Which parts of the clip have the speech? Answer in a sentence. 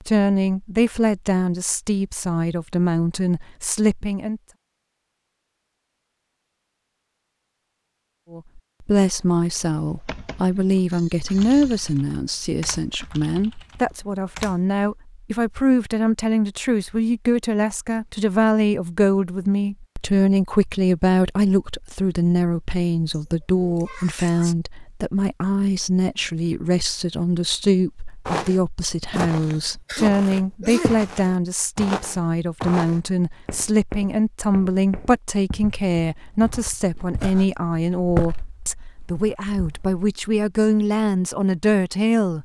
The speech can be heard from 0.0 to 4.4 s and from 8.3 to 42.4 s.